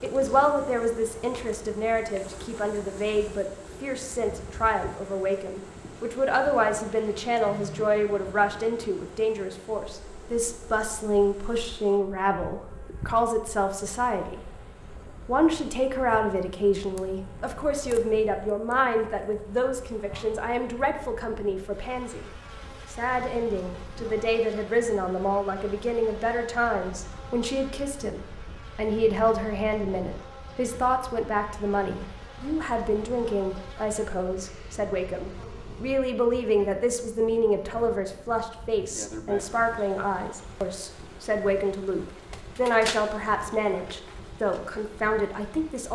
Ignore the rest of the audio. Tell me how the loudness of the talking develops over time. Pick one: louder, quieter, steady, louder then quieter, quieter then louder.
steady.